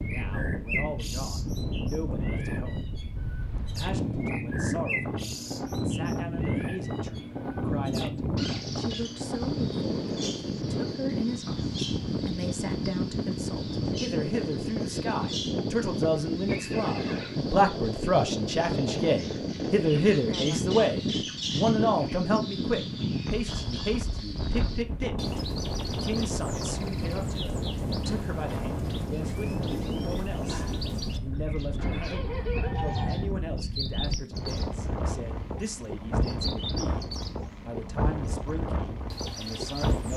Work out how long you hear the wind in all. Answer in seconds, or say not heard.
40 s.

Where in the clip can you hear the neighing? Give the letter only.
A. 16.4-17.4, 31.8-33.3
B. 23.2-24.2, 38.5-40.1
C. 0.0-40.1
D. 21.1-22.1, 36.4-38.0
A.